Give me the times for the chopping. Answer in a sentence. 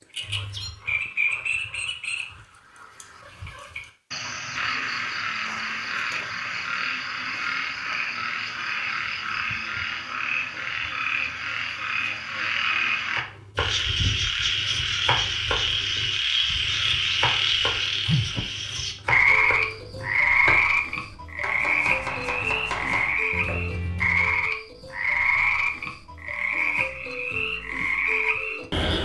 You can hear the chopping from 13.2 to 24.4 s.